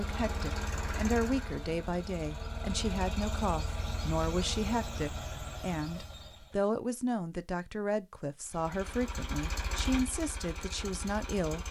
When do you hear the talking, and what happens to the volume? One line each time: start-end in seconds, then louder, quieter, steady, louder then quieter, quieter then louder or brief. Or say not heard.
0.0-11.6 steady.